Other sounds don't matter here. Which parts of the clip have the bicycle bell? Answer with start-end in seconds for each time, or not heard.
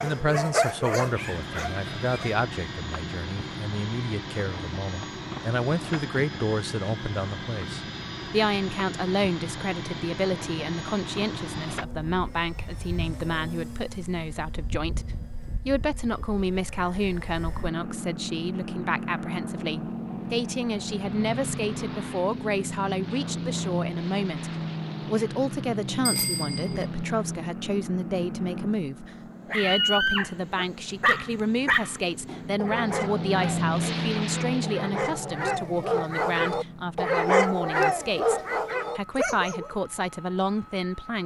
26.1-26.9.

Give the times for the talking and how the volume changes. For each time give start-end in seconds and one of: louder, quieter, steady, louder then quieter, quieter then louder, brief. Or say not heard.
0.0-41.2 steady.